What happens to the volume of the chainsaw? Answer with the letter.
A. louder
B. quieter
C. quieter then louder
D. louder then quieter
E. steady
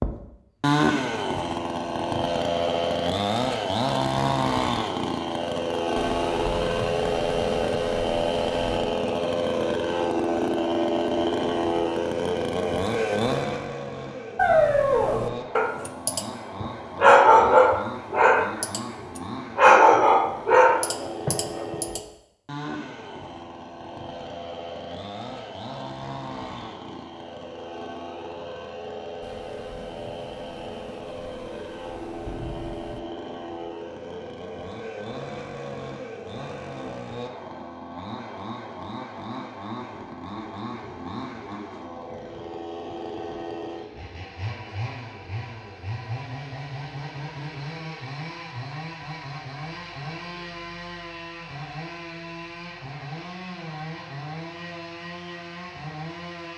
B.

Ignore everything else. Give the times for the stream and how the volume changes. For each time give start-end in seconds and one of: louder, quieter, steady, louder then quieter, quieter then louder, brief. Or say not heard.
not heard.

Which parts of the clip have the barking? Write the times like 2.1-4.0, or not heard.
14.3-22.0.